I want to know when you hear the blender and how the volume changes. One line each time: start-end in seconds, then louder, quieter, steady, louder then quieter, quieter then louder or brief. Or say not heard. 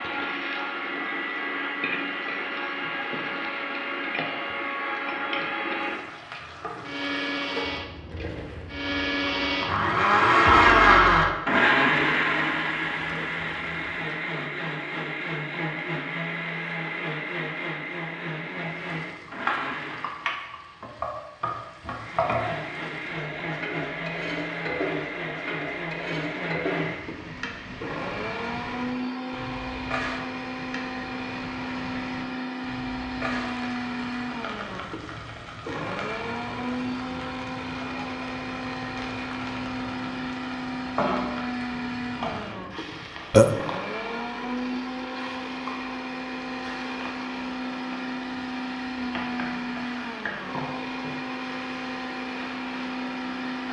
0.0-20.2 louder then quieter
21.9-53.6 steady.